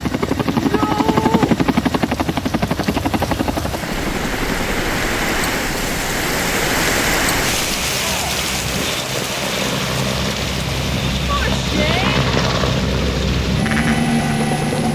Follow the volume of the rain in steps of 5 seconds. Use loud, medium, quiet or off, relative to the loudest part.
medium, loud, medium.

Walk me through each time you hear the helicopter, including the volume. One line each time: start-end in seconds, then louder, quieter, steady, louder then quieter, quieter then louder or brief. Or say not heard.
0.0-14.9 quieter then louder.